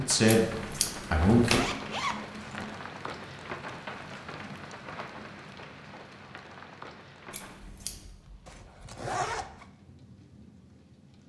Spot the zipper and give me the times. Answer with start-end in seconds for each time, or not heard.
1.4-2.8, 8.4-9.7.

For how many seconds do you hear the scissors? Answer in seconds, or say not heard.
2 s.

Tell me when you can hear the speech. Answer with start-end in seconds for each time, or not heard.
0.0-0.5, 1.1-1.6.